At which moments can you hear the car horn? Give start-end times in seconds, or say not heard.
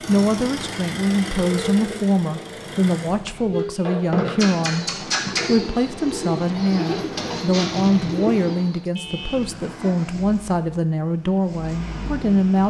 3.1-3.7, 8.9-9.6.